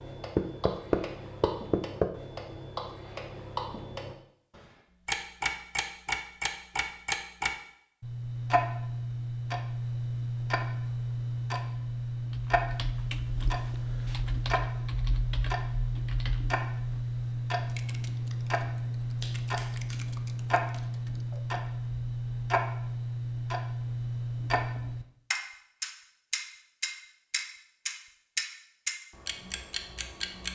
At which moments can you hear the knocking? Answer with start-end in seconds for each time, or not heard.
0.3-2.1.